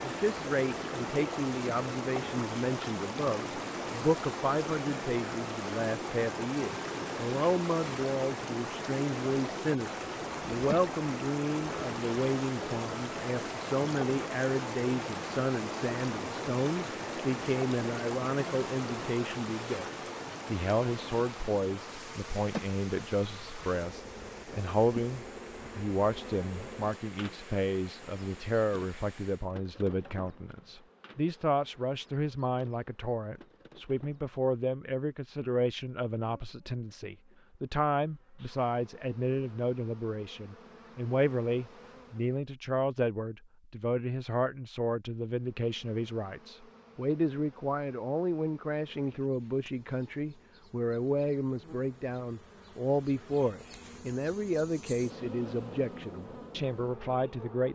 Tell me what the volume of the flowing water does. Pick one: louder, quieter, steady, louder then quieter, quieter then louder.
quieter.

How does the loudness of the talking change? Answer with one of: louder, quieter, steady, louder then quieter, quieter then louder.
steady.